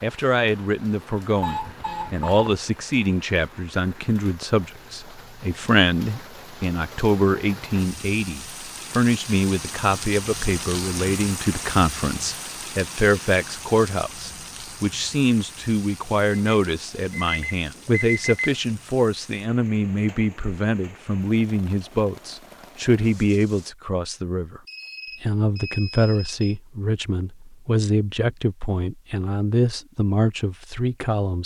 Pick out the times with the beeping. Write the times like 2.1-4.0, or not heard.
1.4-2.6, 16.3-18.6, 24.6-26.4.